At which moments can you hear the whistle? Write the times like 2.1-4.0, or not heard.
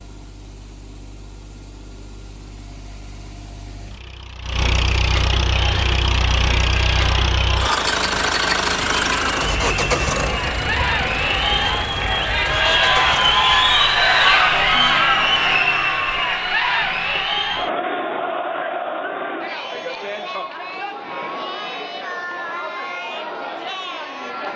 not heard.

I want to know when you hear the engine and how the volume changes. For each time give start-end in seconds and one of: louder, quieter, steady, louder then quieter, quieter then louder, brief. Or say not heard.
0.0-13.7 louder then quieter.